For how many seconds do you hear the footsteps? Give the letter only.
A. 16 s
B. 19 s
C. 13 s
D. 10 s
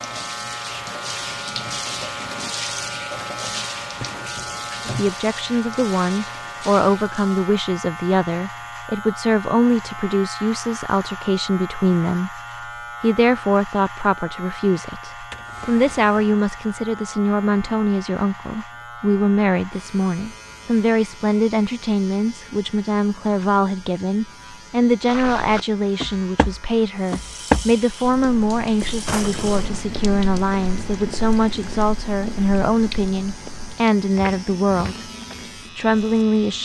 D.